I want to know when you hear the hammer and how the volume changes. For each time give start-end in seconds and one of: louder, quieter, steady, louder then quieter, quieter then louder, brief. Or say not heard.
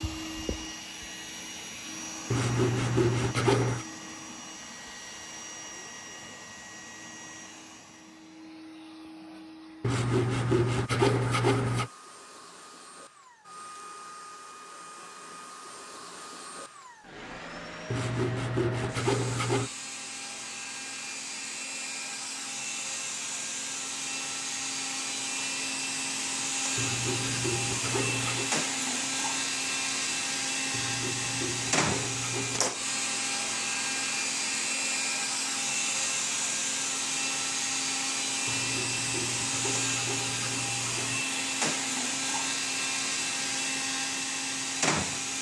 not heard.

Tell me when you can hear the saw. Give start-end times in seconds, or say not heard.
2.3-3.9, 9.8-11.9, 17.9-19.7, 26.8-28.6, 30.7-32.8, 38.5-41.2.